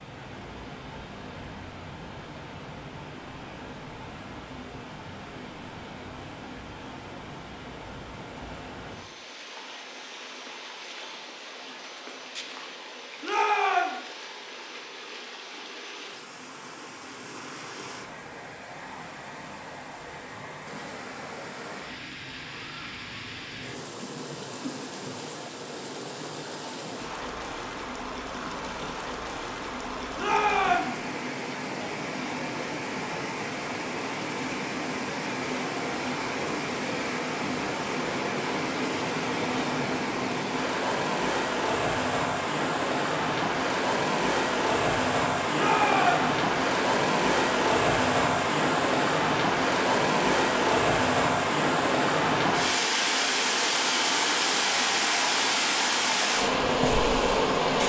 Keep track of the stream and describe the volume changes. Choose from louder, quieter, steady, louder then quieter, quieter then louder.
louder.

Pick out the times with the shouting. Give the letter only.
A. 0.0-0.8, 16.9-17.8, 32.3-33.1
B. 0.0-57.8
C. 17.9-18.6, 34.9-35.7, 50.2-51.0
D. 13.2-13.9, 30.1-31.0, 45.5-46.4
D.